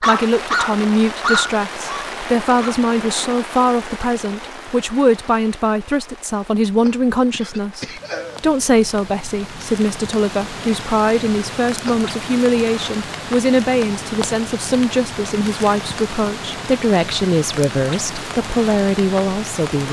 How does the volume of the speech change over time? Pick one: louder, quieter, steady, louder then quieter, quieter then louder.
steady.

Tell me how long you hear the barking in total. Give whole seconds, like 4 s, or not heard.
3 s.